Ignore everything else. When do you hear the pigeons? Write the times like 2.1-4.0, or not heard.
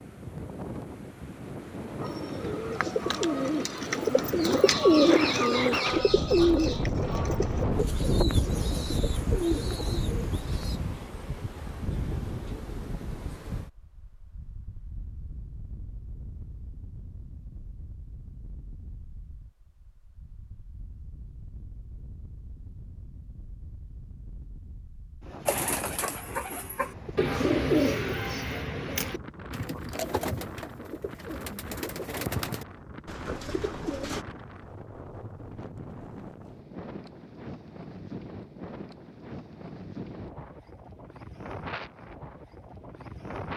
2.0-10.8, 25.4-34.2.